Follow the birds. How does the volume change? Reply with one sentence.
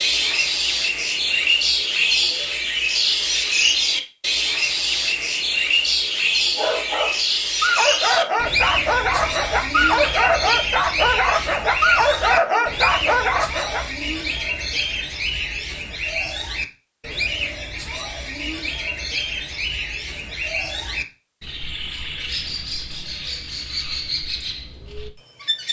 The volume of the birds goes down.